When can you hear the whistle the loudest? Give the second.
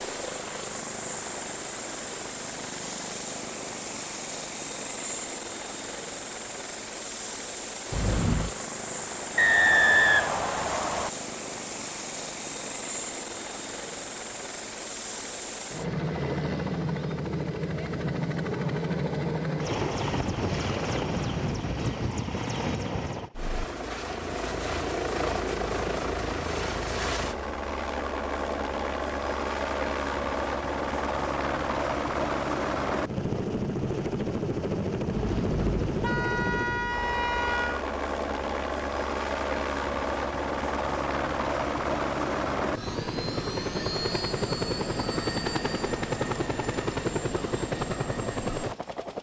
10 s.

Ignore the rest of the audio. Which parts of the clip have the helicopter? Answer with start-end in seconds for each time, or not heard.
0.0-49.1.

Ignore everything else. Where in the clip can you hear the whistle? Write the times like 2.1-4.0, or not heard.
9.3-11.1.